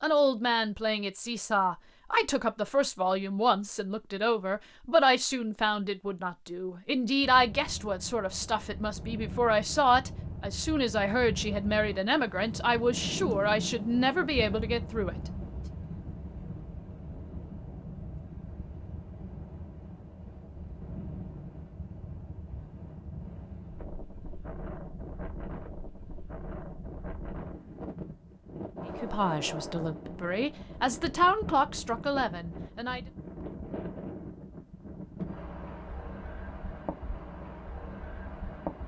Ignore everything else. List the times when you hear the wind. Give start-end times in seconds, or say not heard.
7.2-38.8.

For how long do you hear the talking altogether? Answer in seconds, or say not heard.
19 s.